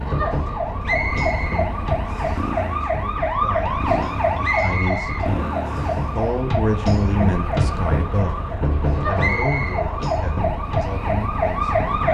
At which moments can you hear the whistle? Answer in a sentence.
The whistle can be heard from 0.8 to 2.5 s, from 4.4 to 6.0 s and from 9.2 to 9.8 s.